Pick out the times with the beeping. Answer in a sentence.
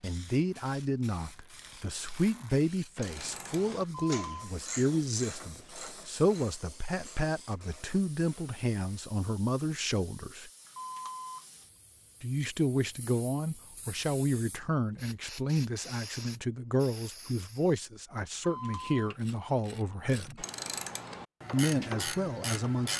The beeping can be heard from 3.9 to 4.5 s, from 10.7 to 11.7 s and from 18.4 to 19.2 s.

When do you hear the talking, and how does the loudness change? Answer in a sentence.
The talking can be heard from 0.0 to 10.5 s, at a steady volume; from 12.2 to 20.4 s, at a steady volume; and briefly from 21.5 to 22.9 s.